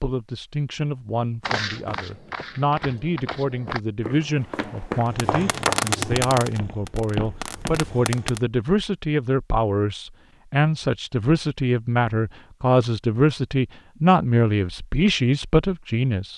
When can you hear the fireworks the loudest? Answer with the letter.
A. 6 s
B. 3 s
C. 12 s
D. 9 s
A.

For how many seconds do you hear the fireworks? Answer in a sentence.
You can hear the fireworks for 3 seconds altogether.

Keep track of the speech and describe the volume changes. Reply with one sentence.
The loudness of the speech goes up.